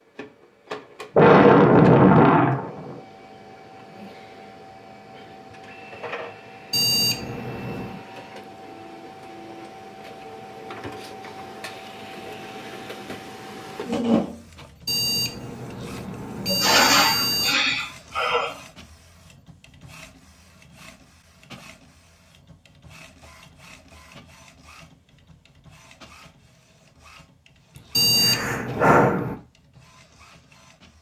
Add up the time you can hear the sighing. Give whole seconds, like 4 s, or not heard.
5 s.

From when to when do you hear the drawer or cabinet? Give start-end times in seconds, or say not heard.
not heard.